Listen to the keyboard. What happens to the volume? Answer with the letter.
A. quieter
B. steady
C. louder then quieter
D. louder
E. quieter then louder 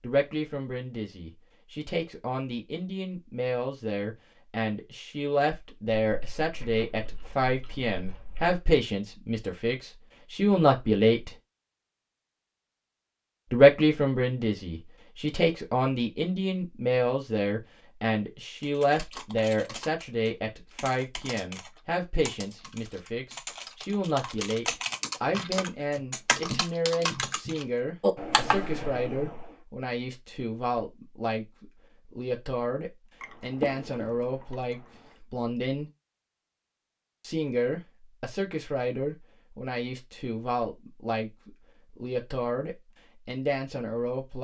D.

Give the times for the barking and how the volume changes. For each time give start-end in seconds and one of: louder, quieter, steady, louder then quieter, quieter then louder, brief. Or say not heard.
not heard.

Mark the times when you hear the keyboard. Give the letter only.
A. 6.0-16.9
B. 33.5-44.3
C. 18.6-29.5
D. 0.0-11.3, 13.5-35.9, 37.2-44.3
C.